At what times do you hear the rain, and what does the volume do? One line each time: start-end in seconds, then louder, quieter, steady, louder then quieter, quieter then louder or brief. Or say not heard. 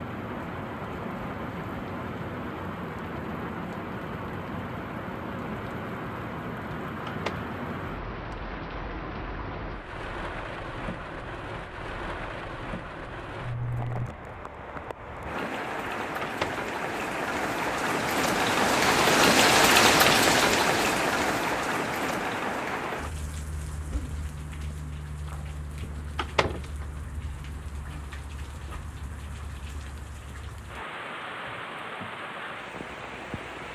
0.0-33.7 louder then quieter.